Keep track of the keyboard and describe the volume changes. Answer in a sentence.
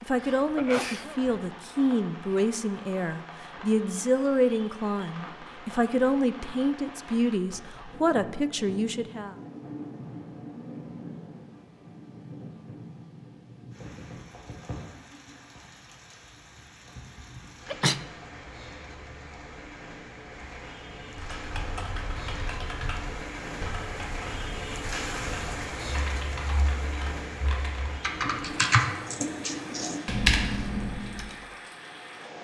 The volume of the keyboard goes up.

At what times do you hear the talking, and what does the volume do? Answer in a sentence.
The talking can be heard from 0.0 to 9.3 s, at a steady volume.